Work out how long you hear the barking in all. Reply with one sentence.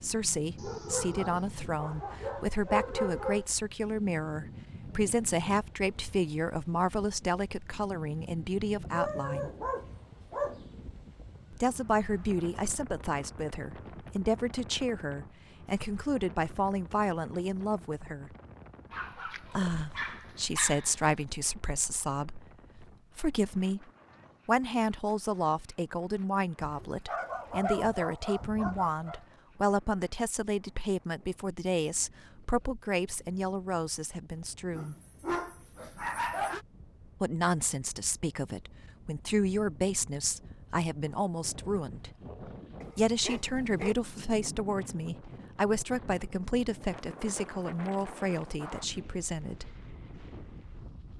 The barking can be heard for 13 seconds in total.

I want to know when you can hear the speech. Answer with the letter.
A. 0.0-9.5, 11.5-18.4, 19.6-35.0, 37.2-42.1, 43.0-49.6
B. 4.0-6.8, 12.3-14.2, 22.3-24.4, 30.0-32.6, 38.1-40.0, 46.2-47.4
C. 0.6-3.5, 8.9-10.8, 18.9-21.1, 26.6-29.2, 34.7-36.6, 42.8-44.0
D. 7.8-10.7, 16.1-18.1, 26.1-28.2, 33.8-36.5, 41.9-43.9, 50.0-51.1
A.